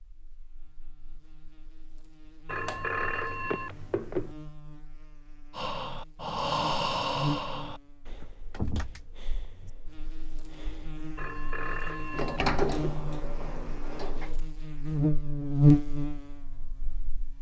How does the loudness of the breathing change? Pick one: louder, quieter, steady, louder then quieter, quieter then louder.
quieter.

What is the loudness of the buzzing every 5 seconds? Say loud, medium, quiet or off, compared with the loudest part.
quiet, quiet, quiet, loud.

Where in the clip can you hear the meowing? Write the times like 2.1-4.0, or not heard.
not heard.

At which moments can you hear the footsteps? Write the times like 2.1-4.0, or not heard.
not heard.